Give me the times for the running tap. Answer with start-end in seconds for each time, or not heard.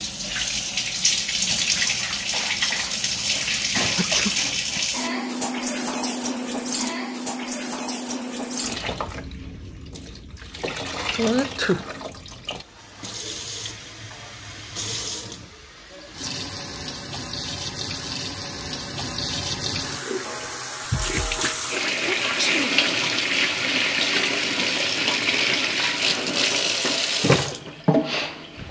0.0-28.6.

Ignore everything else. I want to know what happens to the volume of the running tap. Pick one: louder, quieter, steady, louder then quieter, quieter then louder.
quieter then louder.